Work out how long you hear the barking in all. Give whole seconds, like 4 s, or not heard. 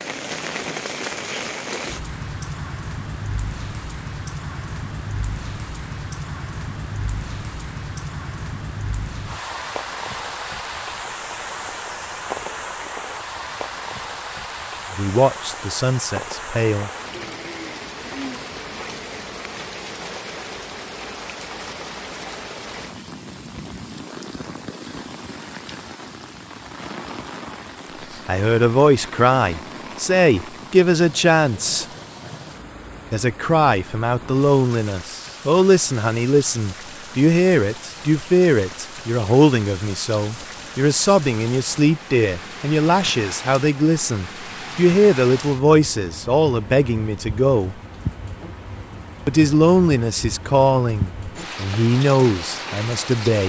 not heard.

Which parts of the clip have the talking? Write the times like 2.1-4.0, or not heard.
14.9-16.9, 28.2-31.9, 33.1-47.8, 49.2-53.4.